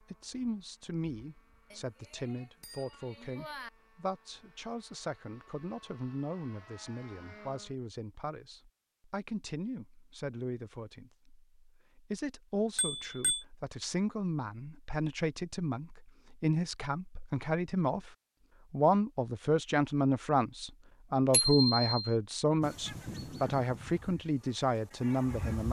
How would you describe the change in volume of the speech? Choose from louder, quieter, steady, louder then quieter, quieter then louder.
louder.